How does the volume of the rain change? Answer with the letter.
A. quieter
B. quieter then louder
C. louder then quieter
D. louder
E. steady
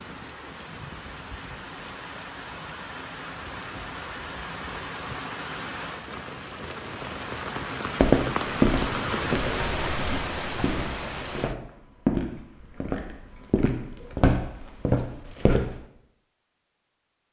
D.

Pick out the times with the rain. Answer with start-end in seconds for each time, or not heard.
0.0-11.6.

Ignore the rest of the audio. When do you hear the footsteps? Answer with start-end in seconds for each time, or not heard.
8.0-15.8.